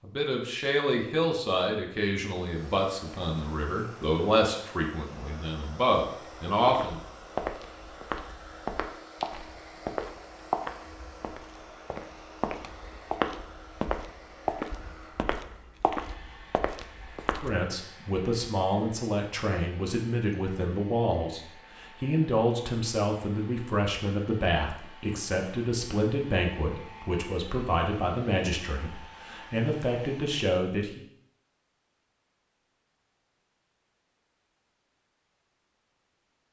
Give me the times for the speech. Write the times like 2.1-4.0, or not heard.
0.0-7.0, 17.4-31.0.